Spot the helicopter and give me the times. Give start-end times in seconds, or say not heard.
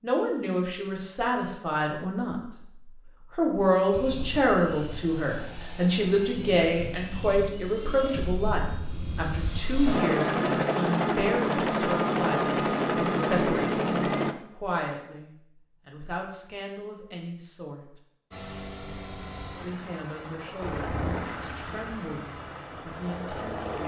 3.9-14.3, 18.3-23.8.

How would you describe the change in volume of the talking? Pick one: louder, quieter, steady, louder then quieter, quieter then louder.
quieter.